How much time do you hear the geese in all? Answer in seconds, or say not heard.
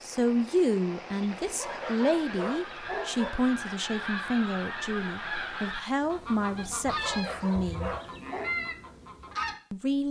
8 s.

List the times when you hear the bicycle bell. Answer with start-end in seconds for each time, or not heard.
not heard.